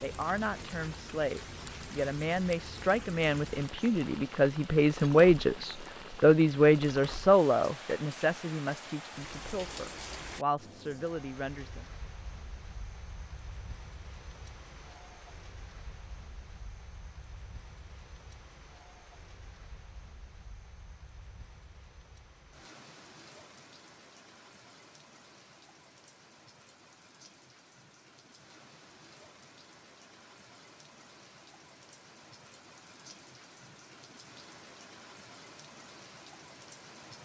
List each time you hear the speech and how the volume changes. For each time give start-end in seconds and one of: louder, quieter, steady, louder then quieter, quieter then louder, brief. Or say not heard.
0.0-11.8 louder then quieter.